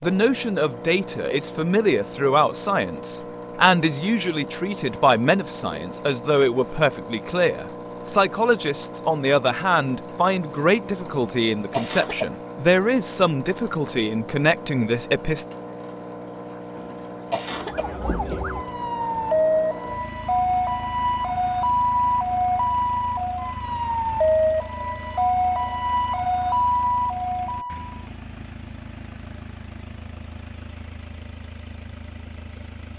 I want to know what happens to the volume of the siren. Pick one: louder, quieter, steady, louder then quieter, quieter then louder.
steady.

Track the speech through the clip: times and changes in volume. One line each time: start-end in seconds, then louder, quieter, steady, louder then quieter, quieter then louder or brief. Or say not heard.
0.0-15.4 steady.